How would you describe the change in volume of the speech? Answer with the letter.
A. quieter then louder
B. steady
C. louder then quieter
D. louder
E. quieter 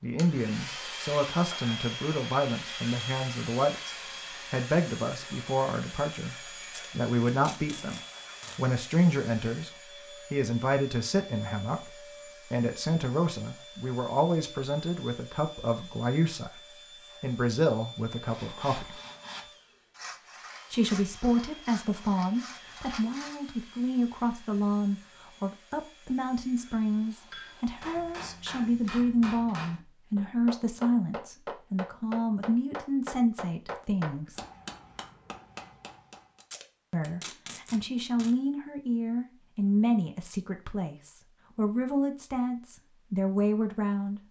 B.